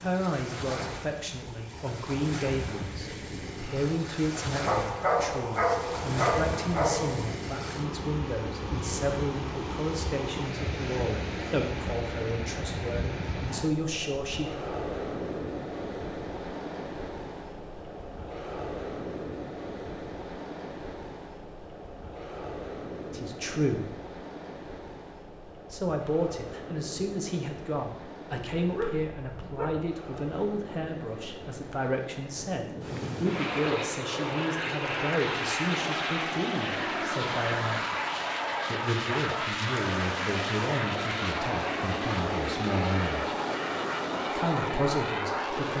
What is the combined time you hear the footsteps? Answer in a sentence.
You can't hear the footsteps here.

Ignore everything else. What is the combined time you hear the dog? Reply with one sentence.
You can hear the dog for 4 seconds altogether.